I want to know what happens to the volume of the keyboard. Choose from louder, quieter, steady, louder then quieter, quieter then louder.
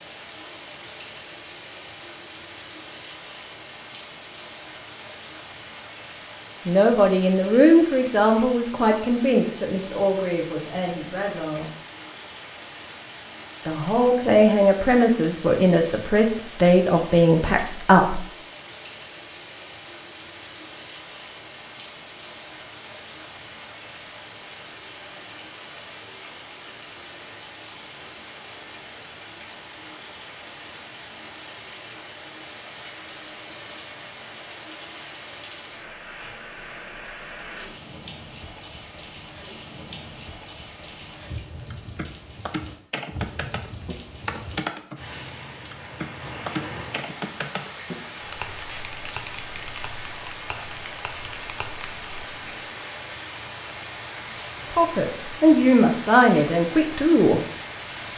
quieter.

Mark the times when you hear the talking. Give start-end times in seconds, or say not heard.
6.7-11.7, 13.7-18.2, 54.7-57.4.